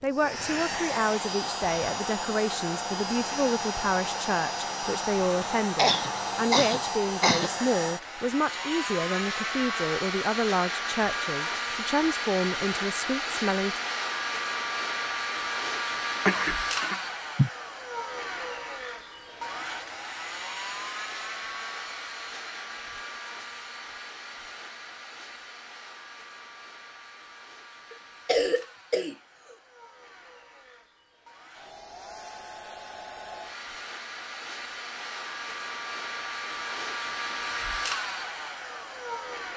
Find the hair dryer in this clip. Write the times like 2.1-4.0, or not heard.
0.0-39.5.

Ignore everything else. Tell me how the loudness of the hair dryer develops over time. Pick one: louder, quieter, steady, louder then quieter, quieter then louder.
quieter then louder.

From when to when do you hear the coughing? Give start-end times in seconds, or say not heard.
5.8-7.5, 16.2-17.5, 27.9-29.1.